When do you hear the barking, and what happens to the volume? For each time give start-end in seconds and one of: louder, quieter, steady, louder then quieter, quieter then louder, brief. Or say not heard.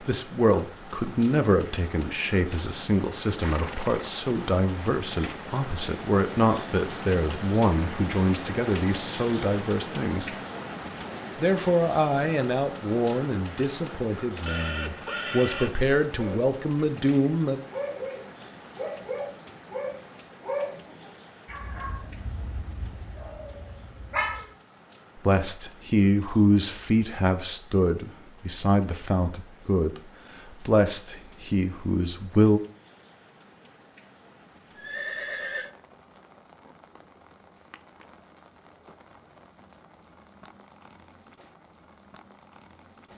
16.1-24.4 quieter.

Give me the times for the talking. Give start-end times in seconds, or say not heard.
0.0-10.3, 11.3-17.6, 25.1-32.6.